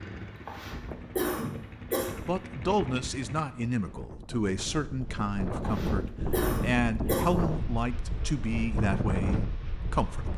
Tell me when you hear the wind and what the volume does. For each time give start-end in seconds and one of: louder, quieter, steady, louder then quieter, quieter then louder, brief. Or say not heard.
0.1-10.3 louder.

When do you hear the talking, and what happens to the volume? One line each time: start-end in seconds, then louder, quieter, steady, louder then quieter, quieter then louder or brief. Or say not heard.
2.1-10.3 steady.